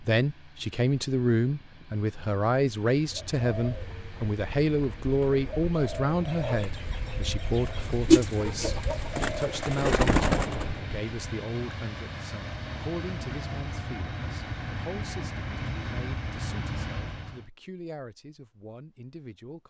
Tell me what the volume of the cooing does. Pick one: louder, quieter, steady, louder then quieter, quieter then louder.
louder.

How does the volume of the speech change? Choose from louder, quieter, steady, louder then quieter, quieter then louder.
quieter.